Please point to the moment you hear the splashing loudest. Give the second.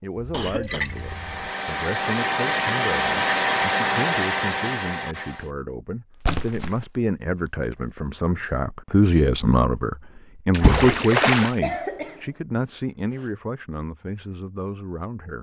11 s.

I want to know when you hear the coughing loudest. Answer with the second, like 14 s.
12 s.